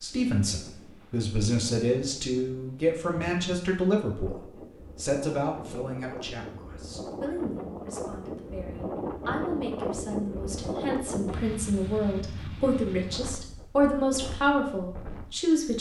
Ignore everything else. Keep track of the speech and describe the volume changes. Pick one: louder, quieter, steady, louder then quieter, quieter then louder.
quieter then louder.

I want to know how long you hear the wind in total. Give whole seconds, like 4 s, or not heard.
16 s.